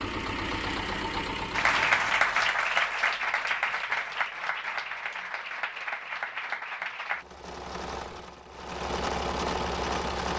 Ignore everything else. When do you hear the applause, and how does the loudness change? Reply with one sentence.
You can hear the applause from 1.5 to 7.2 s, getting quieter.